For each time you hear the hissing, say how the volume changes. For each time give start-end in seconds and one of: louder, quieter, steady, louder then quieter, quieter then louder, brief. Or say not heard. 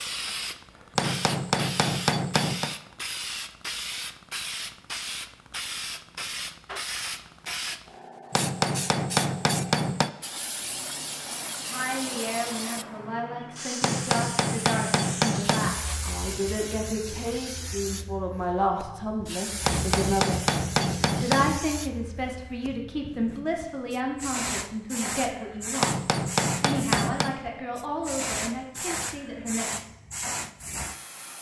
0.0-31.3 steady.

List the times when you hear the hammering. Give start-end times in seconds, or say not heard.
0.9-2.8, 8.3-10.1, 13.8-15.8, 19.6-21.6, 25.8-27.4.